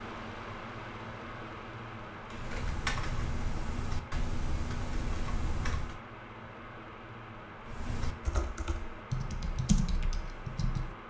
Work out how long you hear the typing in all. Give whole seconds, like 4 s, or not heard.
7 s.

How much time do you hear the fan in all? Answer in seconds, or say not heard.
11 s.